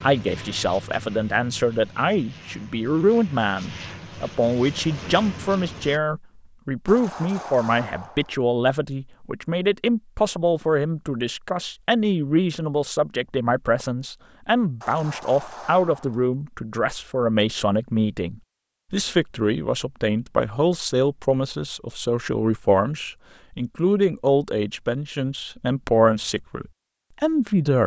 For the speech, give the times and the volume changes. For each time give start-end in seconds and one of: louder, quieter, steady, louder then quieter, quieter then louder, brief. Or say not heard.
0.0-27.8 steady.